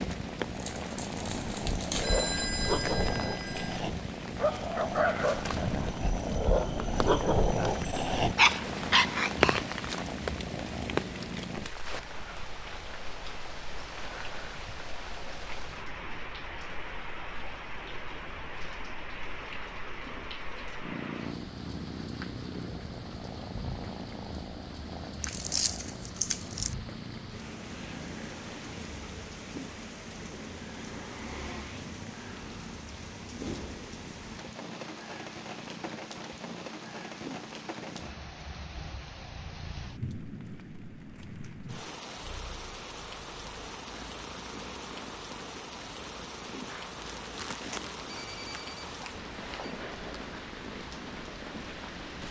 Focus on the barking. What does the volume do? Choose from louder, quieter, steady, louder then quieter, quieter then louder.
louder.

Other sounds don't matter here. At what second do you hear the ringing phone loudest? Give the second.
2 s.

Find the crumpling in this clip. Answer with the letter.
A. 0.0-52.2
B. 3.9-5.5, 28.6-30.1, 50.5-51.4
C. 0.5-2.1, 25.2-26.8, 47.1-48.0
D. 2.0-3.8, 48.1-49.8
C.